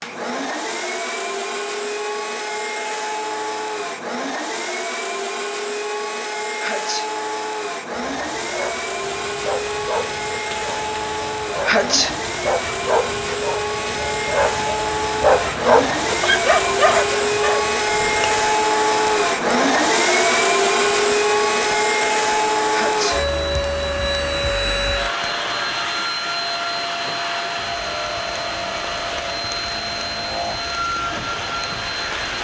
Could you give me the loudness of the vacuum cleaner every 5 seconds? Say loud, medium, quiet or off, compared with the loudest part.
medium, medium, medium, loud, loud, medium, medium.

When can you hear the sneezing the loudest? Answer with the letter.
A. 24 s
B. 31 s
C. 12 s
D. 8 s
C.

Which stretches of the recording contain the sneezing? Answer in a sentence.
The sneezing can be heard from 6.6 to 7.1 s, from 11.6 to 12.2 s and from 22.7 to 23.2 s.